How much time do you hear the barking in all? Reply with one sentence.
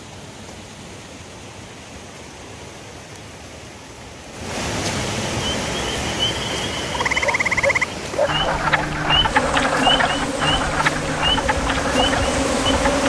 You can hear the barking for 2 seconds altogether.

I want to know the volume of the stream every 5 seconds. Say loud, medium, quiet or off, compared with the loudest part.
medium, loud, loud.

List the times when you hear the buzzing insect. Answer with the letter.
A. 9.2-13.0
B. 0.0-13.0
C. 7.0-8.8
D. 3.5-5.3
A.